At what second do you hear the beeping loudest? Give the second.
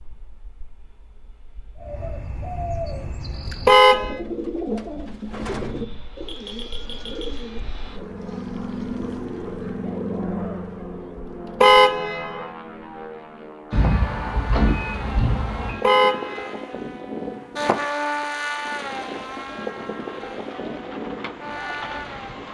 15 s.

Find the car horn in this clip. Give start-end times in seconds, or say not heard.
3.6-4.2, 11.6-12.4, 15.8-16.6.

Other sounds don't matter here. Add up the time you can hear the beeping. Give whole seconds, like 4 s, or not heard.
3 s.